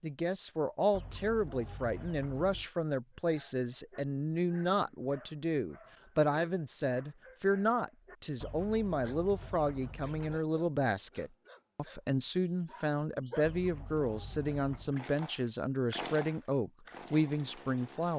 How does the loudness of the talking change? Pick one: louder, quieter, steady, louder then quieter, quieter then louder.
steady.